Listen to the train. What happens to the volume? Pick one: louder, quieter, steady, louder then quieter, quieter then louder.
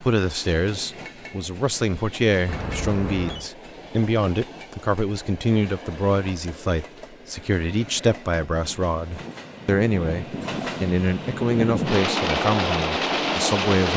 louder.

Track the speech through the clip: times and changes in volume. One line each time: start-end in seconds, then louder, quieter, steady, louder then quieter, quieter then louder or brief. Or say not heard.
0.0-13.9 steady.